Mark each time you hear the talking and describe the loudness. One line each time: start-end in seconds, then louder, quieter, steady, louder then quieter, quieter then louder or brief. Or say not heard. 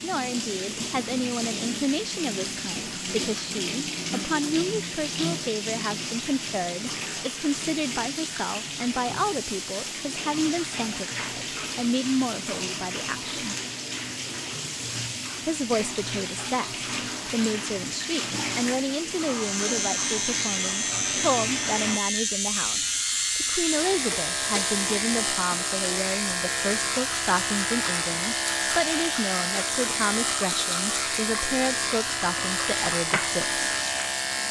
0.0-13.6 steady
15.4-33.6 steady.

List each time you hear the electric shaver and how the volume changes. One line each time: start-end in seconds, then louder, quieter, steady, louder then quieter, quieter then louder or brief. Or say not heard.
19.2-34.4 steady.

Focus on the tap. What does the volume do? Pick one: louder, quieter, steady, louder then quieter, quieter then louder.
steady.